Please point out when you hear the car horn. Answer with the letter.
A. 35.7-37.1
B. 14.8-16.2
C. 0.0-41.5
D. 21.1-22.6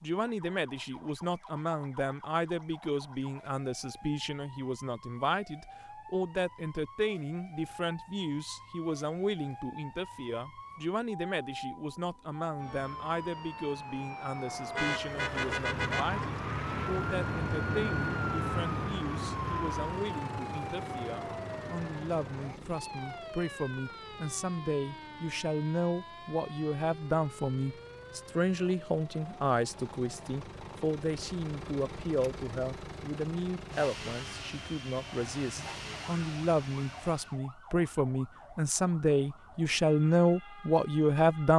B.